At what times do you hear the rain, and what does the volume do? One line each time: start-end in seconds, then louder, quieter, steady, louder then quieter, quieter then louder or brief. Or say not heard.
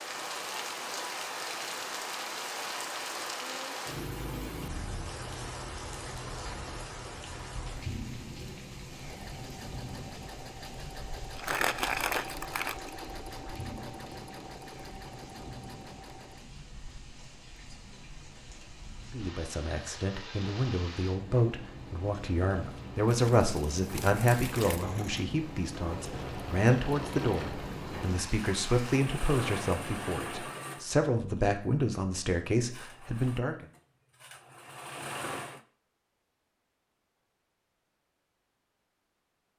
0.0-29.0 quieter then louder.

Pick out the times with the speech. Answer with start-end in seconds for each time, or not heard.
19.1-33.6.